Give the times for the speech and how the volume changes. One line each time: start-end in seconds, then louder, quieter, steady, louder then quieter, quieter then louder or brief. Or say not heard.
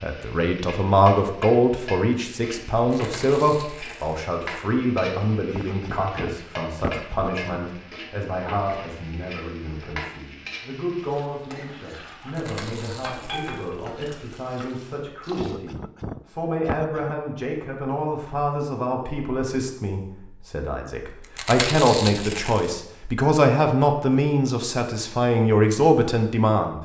0.0-26.7 quieter then louder.